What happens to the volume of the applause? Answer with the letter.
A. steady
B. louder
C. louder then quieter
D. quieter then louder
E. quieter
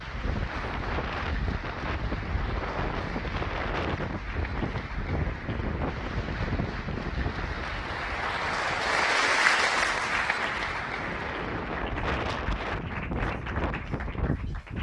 C.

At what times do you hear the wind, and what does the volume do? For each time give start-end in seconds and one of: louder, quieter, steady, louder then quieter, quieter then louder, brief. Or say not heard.
0.0-14.7 quieter then louder.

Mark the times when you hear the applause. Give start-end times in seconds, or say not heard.
0.0-14.7.